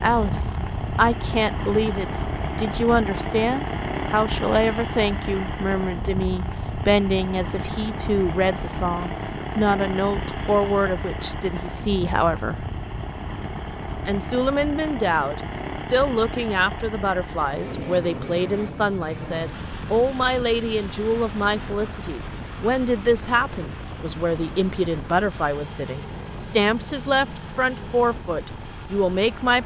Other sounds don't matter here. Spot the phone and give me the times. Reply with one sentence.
You can't hear the phone here.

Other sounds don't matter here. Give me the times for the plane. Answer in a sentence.
You can hear the plane from 0.0 to 29.6 s.